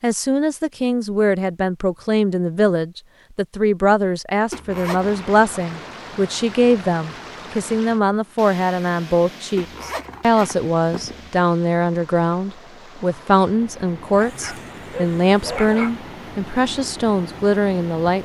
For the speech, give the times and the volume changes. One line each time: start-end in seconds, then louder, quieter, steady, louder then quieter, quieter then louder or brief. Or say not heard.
0.0-18.2 steady.